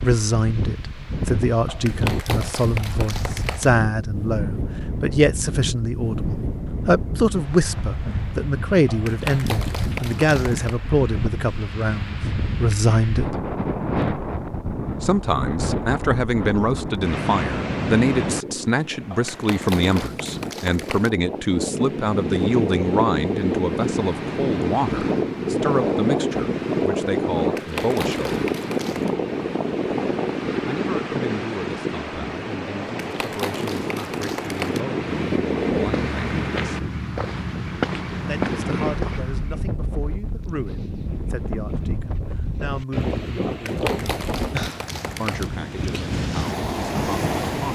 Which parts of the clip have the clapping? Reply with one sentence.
The clapping can be heard from 1.6 to 3.7 s, from 8.8 to 10.8 s, from 19.1 to 21.1 s, from 27.4 to 29.1 s, from 33.0 to 34.8 s and from 43.5 to 45.5 s.